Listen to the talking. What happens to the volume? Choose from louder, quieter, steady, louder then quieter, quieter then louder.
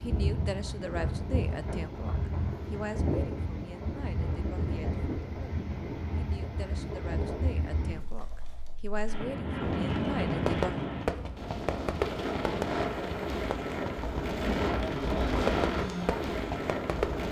quieter then louder.